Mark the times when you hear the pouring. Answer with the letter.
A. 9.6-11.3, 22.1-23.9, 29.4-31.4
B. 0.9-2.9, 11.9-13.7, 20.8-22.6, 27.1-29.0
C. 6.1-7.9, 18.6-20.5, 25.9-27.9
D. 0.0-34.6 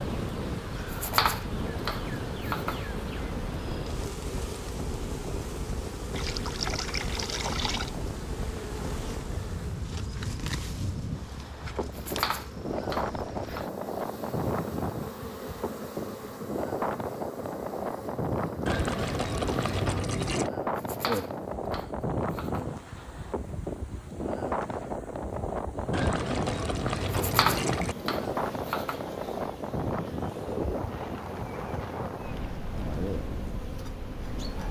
C.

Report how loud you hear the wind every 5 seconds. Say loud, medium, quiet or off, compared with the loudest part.
loud, medium, loud, loud, loud, loud, loud.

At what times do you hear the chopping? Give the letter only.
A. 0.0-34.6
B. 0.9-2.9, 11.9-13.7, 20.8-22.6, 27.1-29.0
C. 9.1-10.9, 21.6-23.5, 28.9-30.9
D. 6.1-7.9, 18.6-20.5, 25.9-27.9
B.